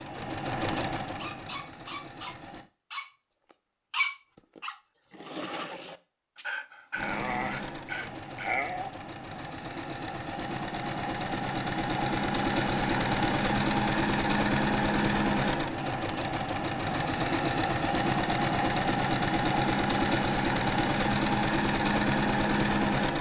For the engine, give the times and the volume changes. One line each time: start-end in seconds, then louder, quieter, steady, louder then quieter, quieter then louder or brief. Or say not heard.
0.0-2.7 brief
6.9-23.1 louder.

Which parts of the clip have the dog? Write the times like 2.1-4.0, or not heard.
1.1-8.9.